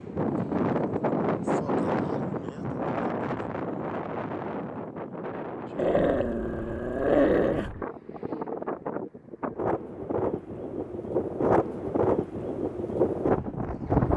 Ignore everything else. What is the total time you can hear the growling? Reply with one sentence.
You can hear the growling for 2 seconds altogether.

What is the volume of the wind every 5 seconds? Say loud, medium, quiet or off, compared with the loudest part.
loud, medium, loud.